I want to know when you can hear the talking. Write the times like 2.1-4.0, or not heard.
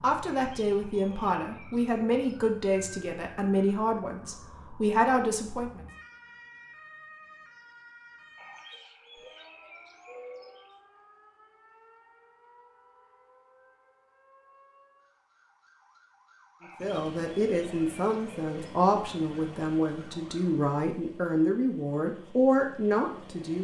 0.0-5.8, 16.8-23.5.